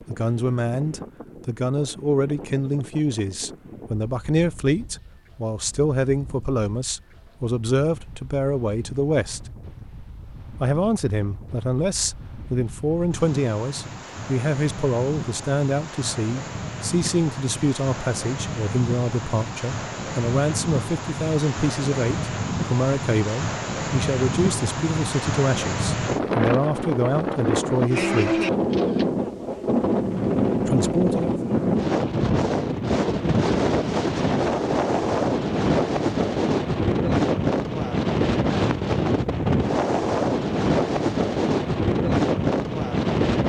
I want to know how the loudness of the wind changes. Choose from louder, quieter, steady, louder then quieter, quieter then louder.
louder.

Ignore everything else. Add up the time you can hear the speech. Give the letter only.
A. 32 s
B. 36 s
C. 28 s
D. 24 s
C.